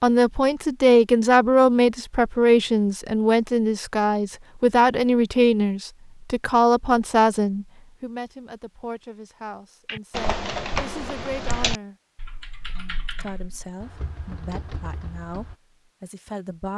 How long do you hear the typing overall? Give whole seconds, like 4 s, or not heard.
6 s.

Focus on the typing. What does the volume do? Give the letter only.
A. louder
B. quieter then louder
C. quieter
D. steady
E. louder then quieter
C.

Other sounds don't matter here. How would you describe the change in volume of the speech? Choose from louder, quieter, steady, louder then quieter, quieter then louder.
quieter.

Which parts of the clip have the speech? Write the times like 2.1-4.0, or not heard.
0.0-11.9, 13.1-16.7.